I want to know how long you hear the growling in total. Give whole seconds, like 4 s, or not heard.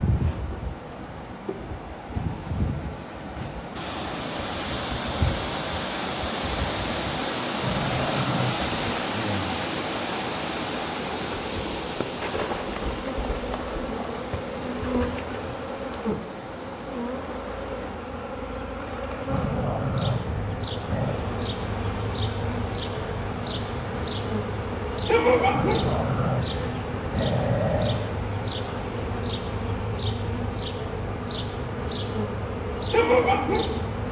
6 s.